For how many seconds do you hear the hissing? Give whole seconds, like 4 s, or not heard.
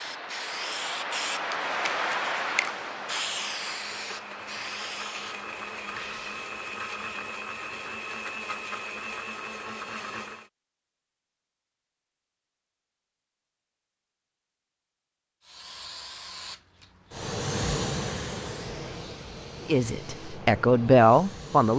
13 s.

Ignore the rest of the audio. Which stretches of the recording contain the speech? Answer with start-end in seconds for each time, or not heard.
19.6-21.7.